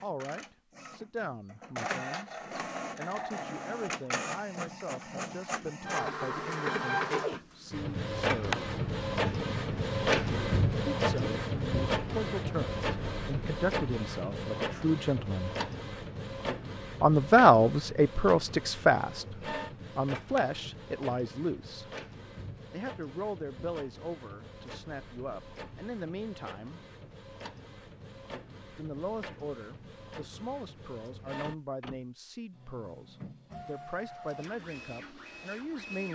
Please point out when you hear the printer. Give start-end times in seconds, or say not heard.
0.0-36.1.